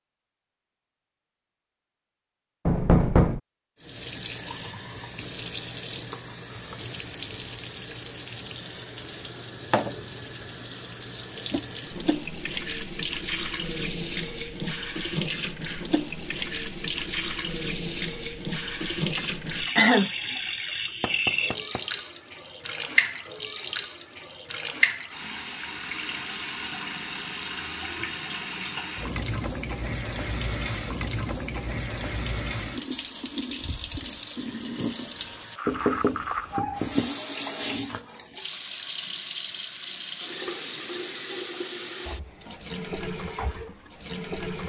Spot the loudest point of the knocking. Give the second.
3 s.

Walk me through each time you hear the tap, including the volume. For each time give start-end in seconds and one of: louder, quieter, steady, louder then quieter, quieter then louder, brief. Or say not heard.
3.8-44.6 steady.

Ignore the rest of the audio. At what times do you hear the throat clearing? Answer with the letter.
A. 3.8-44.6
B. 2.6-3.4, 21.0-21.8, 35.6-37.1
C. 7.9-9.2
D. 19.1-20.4
D.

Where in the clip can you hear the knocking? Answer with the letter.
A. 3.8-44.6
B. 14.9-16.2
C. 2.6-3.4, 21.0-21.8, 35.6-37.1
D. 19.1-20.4
C.